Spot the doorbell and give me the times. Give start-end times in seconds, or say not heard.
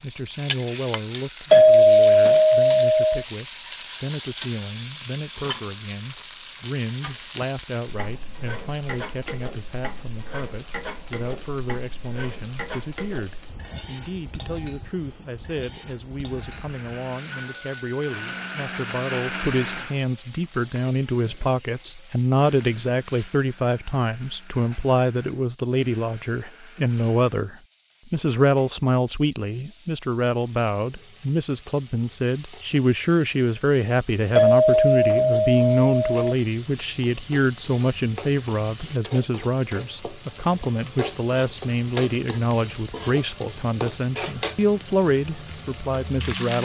1.5-3.2, 17.3-18.4, 34.4-36.3.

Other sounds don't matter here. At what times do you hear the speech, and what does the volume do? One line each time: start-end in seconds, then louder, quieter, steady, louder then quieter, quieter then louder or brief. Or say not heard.
0.0-46.5 louder.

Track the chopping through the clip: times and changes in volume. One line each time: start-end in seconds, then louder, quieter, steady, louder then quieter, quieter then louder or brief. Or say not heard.
not heard.